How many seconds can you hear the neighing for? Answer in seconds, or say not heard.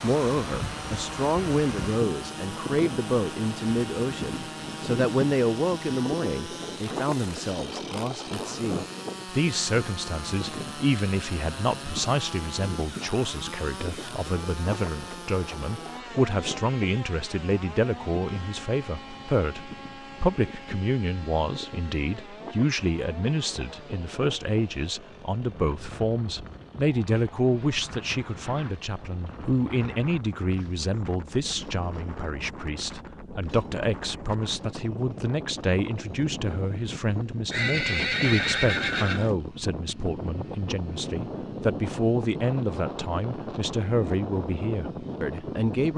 2 s.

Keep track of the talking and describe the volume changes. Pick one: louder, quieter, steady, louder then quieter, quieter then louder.
steady.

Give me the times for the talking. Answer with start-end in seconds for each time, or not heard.
0.0-45.9.